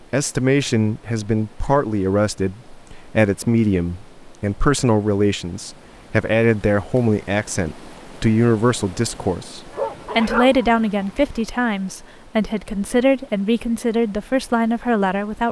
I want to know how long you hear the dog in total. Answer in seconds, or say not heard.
2 s.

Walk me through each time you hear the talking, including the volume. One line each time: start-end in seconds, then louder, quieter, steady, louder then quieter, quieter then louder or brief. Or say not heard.
0.1-15.4 steady.